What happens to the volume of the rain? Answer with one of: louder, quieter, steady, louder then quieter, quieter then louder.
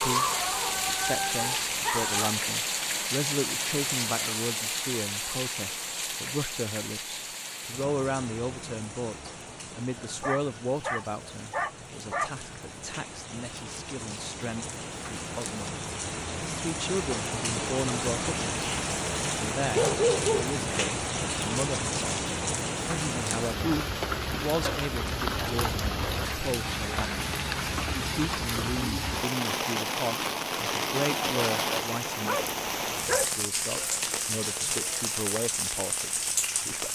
quieter then louder.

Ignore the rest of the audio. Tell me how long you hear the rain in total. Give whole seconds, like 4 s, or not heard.
37 s.